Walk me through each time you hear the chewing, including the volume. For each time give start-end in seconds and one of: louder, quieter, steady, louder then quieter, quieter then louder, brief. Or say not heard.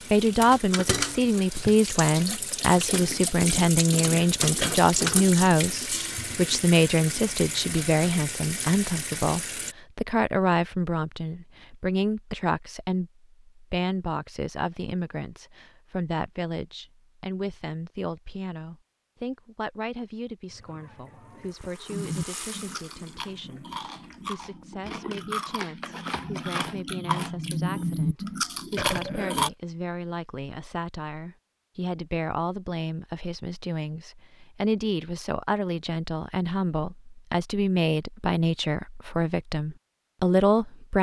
21.9-29.5 louder.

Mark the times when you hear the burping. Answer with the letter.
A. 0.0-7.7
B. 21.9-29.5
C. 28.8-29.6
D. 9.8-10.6
C.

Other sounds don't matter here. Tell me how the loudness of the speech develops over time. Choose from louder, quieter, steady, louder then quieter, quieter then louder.
quieter then louder.